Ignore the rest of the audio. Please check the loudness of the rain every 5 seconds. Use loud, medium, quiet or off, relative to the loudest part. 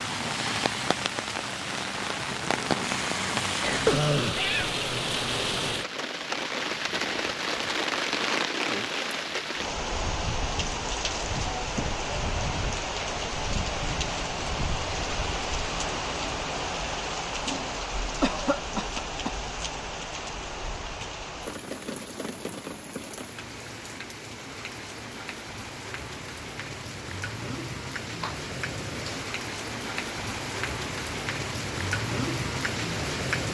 loud, loud, loud, loud, medium, medium, loud.